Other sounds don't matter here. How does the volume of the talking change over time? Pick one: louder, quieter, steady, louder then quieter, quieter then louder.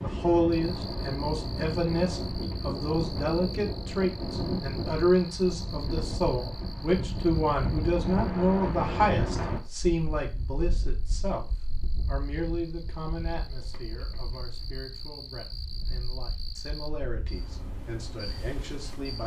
quieter.